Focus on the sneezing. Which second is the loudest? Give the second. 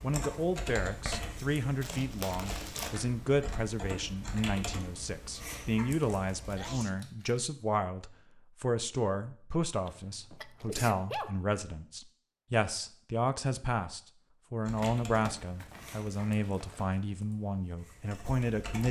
11 s.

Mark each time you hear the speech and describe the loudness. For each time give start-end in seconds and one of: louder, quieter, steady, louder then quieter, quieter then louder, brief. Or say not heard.
0.0-18.8 steady.